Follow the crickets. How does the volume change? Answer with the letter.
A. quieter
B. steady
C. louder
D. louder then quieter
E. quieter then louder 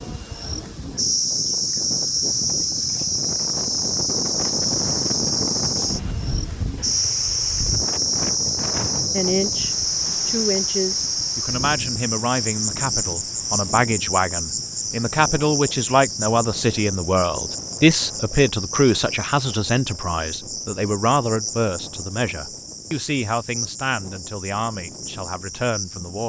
A.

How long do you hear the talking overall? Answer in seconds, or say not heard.
17 s.